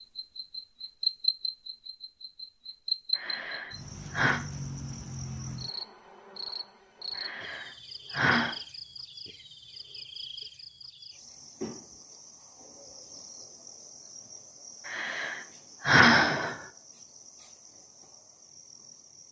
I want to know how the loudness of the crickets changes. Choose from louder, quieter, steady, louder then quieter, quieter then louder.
quieter.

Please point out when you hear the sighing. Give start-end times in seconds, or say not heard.
3.1-4.4, 7.2-8.6, 14.8-16.6.